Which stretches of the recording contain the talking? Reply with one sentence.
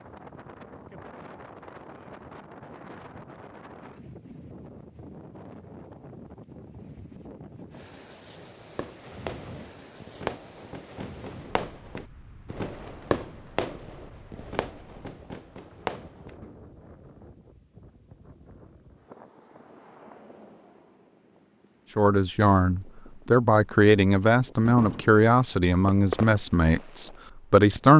You can hear the talking from 21.9 to 27.9 s.